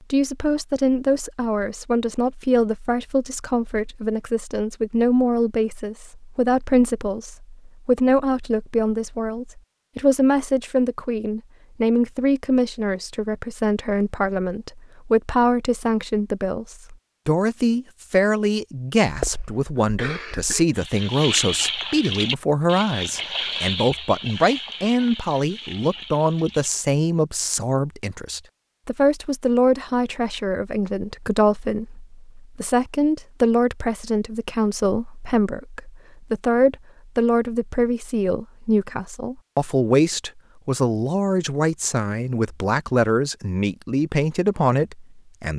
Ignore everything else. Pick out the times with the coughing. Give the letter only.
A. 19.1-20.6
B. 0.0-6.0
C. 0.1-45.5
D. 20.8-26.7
A.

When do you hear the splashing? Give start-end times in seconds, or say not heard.
20.8-26.7.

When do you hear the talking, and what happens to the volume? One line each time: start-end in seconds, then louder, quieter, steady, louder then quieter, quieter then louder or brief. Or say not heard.
0.1-45.5 steady.